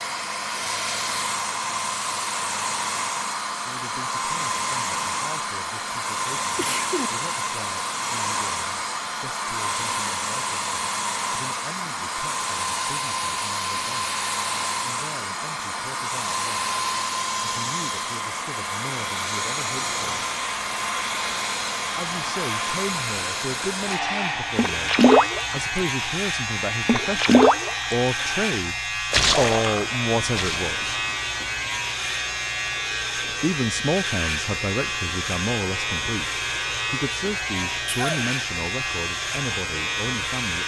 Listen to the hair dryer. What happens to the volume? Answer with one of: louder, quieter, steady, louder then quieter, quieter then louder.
quieter.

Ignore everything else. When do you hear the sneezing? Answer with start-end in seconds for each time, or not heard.
6.5-7.1, 37.9-38.4.